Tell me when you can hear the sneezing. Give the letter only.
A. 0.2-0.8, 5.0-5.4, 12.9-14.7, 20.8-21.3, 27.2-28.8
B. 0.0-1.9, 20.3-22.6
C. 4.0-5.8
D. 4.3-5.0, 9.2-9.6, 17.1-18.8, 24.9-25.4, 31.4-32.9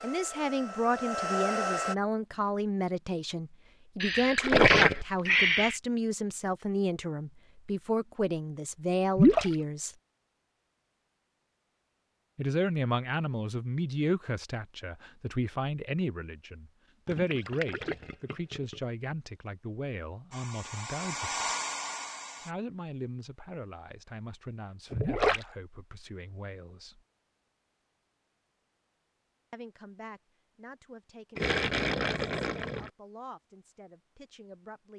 C.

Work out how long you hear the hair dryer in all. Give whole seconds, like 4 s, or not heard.
4 s.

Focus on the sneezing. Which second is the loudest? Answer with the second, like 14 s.
5 s.